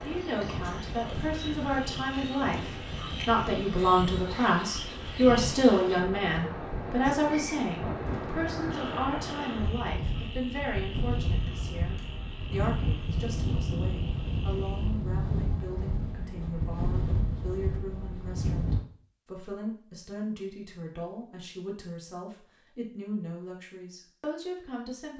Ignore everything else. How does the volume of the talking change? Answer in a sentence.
The volume of the talking goes down.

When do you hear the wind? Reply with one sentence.
You can hear the wind from 0.0 to 18.9 s.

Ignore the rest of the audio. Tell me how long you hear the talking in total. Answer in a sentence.
The talking can be heard for 25 seconds in total.